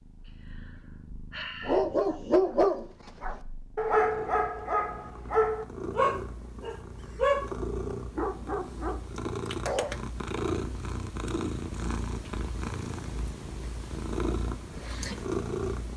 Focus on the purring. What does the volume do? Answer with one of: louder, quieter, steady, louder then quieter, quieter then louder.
louder.